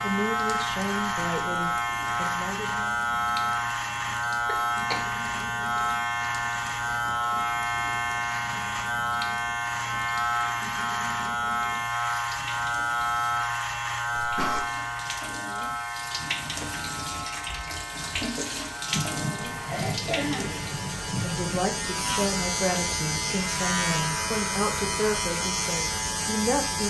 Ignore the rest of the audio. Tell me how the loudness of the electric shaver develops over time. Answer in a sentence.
The volume of the electric shaver goes down, then up.